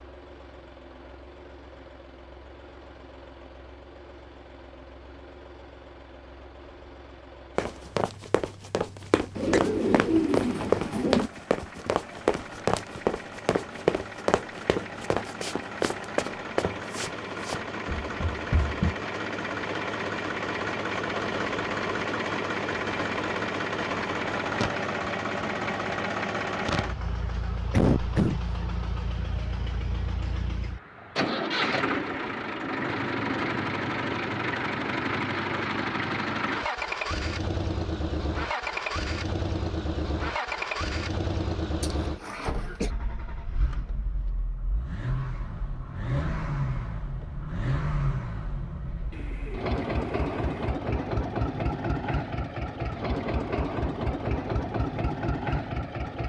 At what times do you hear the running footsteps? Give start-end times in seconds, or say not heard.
7.5-18.9.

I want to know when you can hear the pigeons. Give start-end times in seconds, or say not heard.
9.3-11.3, 49.1-50.8.